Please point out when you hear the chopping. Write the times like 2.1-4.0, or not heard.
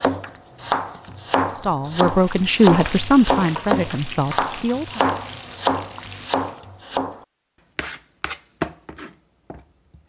0.0-10.0.